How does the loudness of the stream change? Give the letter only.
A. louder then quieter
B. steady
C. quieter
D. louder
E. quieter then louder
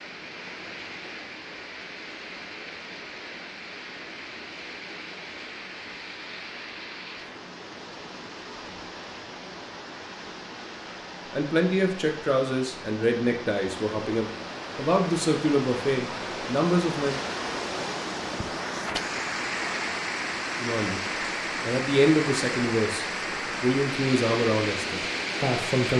D.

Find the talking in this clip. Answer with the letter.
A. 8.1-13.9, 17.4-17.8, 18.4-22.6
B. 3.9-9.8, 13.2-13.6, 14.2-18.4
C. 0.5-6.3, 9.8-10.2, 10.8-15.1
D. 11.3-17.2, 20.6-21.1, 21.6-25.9
D.